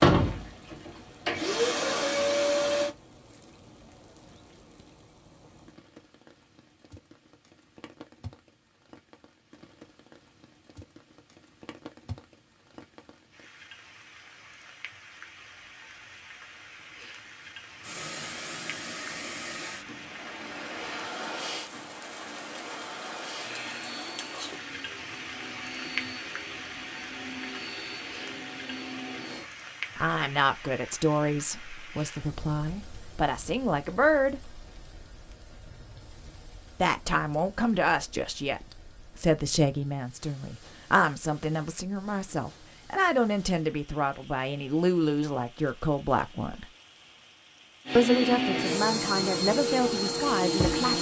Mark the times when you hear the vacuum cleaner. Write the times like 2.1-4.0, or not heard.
0.0-3.0, 17.8-29.5, 47.9-50.9.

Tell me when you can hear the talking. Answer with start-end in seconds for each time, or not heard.
29.9-34.6, 36.8-46.7, 48.0-50.9.